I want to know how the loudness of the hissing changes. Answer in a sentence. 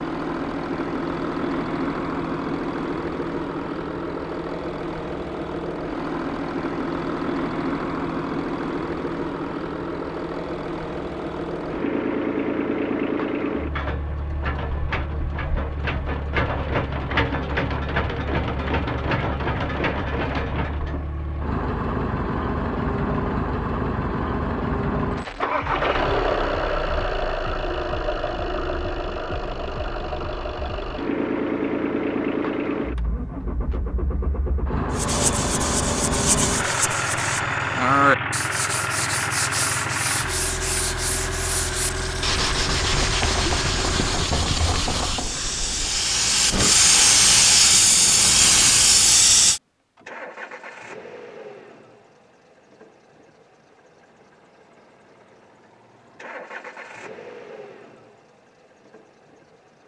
The volume of the hissing goes up.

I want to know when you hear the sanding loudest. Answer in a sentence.
The volume of the sanding peaks at 38 seconds.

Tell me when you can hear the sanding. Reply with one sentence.
You can hear the sanding from 34.9 to 46.0 s.